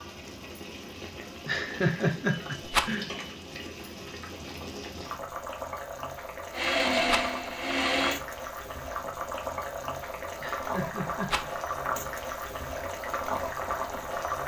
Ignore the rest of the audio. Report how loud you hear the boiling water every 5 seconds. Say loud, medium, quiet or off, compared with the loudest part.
medium, loud, loud.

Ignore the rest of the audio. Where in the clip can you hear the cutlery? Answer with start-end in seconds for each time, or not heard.
not heard.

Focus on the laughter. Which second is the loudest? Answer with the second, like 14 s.
2 s.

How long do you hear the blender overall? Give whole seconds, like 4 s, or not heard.
2 s.